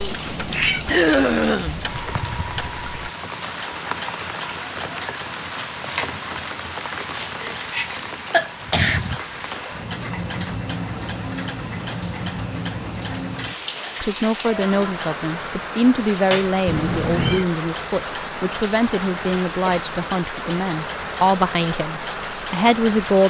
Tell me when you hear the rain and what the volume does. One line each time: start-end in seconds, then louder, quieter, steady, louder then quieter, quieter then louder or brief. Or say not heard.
0.0-23.2 steady.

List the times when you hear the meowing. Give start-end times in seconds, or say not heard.
0.1-0.8, 16.6-17.4.